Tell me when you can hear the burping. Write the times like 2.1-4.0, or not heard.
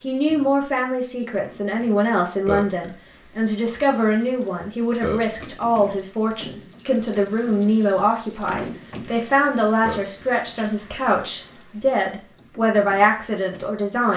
2.5-2.9, 5.0-5.5, 9.8-10.3.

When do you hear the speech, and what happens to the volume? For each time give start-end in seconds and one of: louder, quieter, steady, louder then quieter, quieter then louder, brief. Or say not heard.
0.0-14.1 steady.